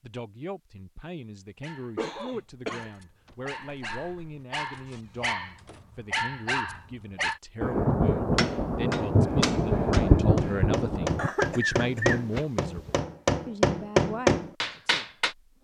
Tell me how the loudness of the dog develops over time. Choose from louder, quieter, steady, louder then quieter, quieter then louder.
louder.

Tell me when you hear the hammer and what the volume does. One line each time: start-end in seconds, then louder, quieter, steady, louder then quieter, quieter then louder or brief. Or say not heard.
8.3-15.3 louder.